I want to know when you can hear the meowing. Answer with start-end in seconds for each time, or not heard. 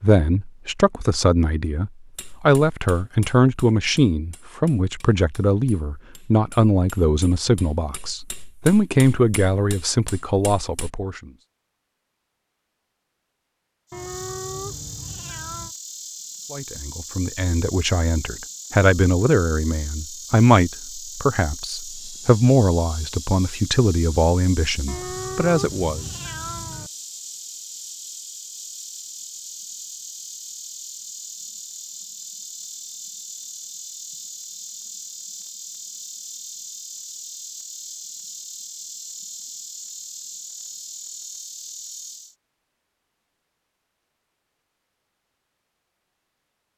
13.9-15.8, 24.9-26.9.